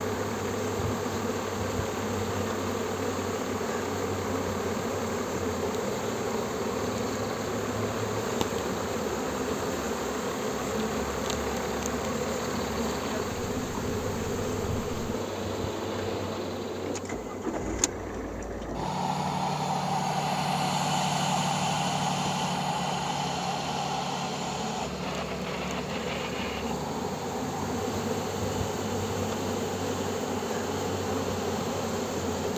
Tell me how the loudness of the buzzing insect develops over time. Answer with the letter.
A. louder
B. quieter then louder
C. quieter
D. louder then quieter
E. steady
B.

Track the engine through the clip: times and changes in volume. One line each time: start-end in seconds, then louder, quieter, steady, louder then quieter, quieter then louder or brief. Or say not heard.
0.0-32.5 louder then quieter.